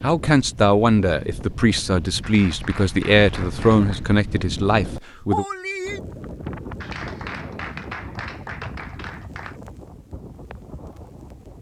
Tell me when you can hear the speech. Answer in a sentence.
You can hear the speech from 0.0 to 5.5 s.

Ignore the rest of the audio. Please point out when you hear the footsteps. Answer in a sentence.
The footsteps can't be heard in this clip.